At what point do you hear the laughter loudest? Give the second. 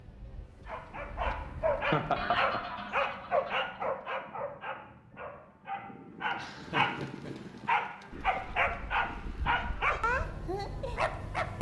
2 s.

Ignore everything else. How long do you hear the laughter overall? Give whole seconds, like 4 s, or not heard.
2 s.